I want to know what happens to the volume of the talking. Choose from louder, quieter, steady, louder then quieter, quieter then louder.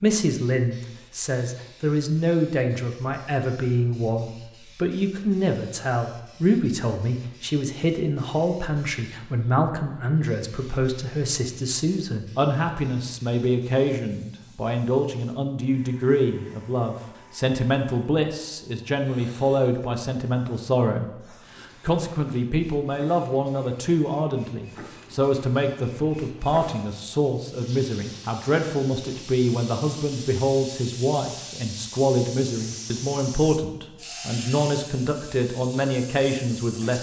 steady.